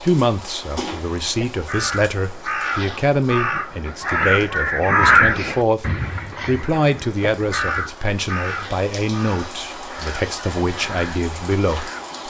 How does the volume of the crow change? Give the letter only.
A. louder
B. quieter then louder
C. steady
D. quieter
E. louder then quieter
E.